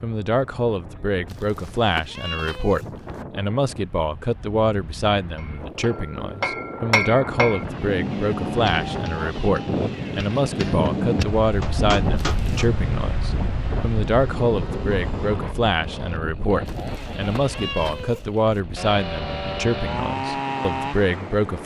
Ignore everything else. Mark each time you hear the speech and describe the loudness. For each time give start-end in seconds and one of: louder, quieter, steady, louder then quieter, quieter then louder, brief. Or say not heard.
0.0-21.6 steady.